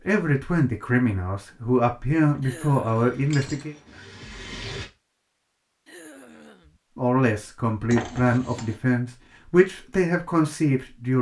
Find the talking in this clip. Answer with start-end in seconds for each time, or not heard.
0.1-3.8, 7.0-11.1.